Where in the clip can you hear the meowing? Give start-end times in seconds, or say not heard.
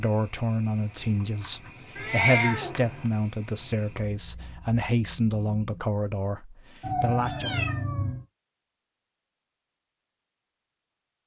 1.9-3.0, 6.8-8.2.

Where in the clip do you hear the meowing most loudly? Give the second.
2 s.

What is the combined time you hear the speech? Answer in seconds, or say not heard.
8 s.